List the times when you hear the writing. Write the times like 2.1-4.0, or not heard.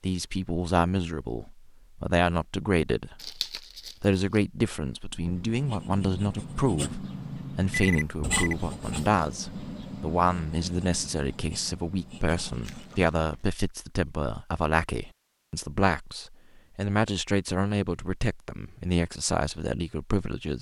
5.2-13.2.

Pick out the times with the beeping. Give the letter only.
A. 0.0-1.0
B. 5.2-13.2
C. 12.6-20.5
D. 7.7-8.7
D.